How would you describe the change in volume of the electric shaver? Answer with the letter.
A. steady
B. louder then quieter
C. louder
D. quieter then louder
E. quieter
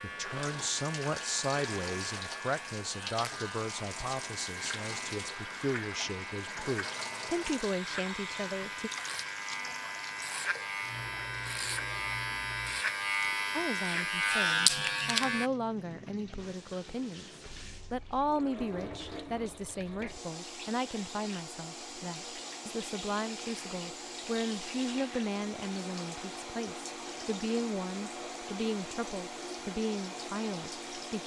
C.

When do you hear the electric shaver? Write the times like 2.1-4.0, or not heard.
0.0-15.5.